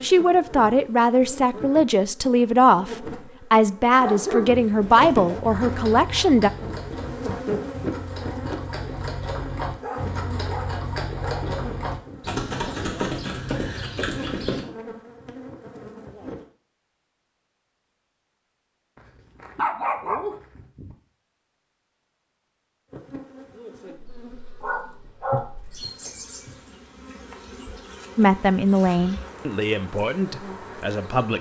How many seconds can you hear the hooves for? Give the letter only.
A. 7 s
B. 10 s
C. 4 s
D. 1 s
B.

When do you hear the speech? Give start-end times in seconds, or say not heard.
0.0-6.5, 28.1-31.3.